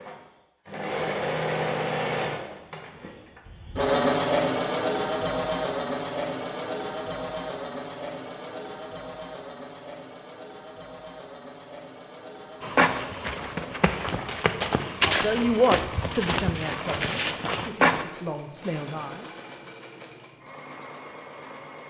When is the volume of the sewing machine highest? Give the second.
4 s.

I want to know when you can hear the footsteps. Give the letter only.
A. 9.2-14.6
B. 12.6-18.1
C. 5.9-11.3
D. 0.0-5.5
B.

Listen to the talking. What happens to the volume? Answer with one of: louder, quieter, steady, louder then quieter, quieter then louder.
quieter then louder.